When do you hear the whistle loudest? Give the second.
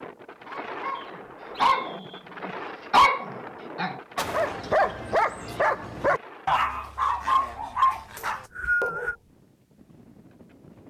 9 s.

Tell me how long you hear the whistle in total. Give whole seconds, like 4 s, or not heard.
2 s.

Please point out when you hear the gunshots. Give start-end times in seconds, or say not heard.
not heard.